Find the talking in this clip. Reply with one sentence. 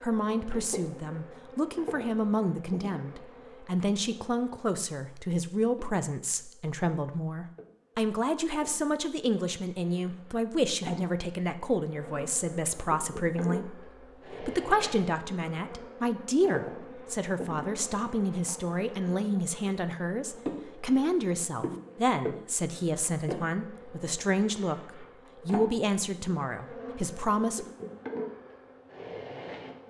The talking can be heard from 0.0 to 27.6 s.